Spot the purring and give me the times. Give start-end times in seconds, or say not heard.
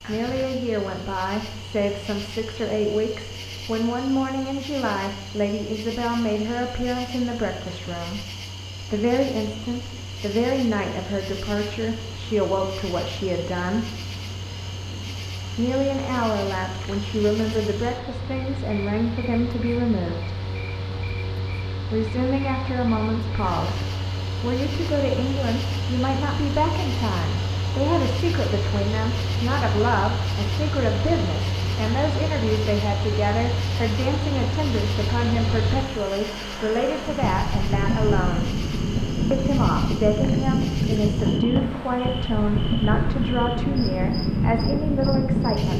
not heard.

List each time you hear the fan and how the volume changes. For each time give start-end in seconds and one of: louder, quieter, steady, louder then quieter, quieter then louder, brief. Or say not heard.
0.0-45.7 louder.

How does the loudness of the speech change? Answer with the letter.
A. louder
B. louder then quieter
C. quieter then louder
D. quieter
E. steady
E.